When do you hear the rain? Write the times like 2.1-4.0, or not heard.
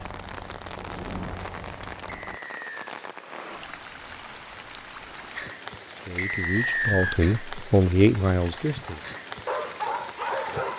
0.0-10.7.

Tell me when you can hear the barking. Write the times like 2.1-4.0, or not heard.
9.0-10.7.